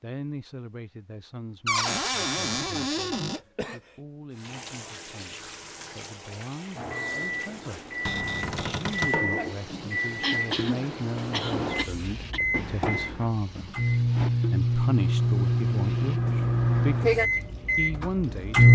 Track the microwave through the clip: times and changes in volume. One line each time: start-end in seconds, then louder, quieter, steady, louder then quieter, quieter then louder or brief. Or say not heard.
6.8-18.6 louder.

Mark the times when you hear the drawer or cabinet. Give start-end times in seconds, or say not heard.
1.6-3.4, 8.1-9.2, 12.5-14.3.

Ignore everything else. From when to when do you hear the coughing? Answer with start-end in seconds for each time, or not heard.
3.3-4.0, 10.2-12.4.